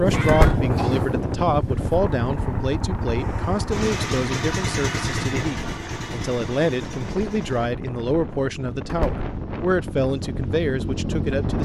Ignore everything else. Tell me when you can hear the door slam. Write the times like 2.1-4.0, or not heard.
0.2-0.7, 8.8-9.2.